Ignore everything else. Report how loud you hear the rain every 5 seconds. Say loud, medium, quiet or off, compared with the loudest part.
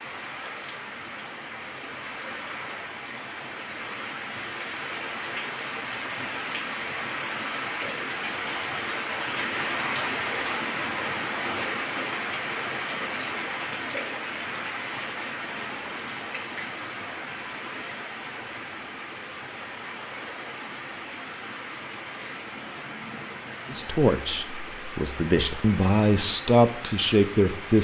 medium, loud, loud, medium, medium, medium.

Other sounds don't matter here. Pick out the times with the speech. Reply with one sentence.
The speech can be heard from 23.7 to 27.7 s.